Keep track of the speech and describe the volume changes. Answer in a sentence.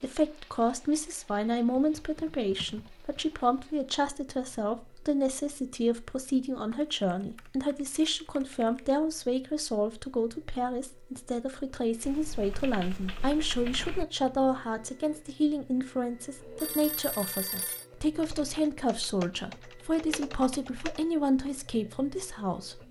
The volume of the speech stays about the same.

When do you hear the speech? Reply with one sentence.
The speech can be heard from 0.0 to 22.8 s.